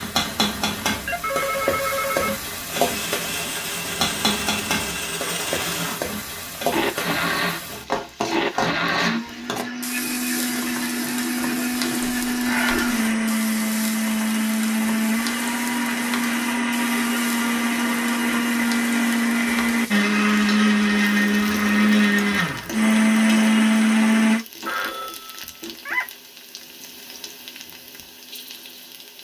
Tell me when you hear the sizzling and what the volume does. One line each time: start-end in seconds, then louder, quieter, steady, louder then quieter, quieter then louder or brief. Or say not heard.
0.0-29.1 quieter.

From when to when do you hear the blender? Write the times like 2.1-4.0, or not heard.
2.6-24.4.